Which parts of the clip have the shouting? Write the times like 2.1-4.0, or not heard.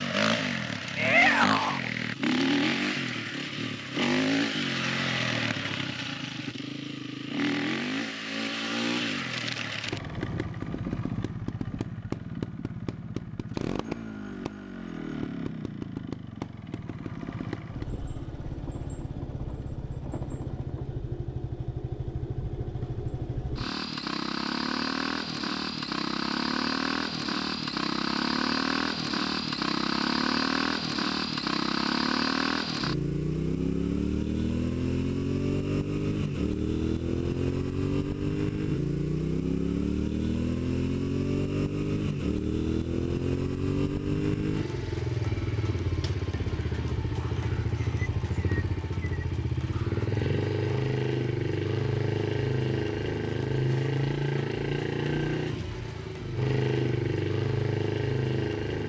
0.9-1.8.